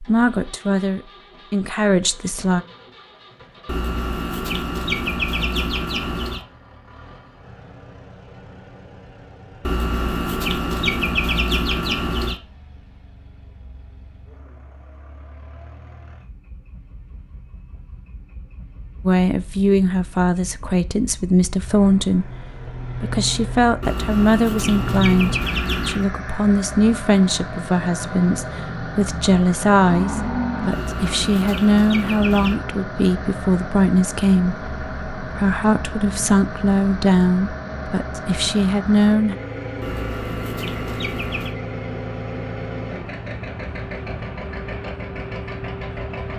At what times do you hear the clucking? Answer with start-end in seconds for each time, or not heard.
3.6-6.5, 9.6-12.4, 23.8-26.1, 30.7-32.5, 39.8-41.5.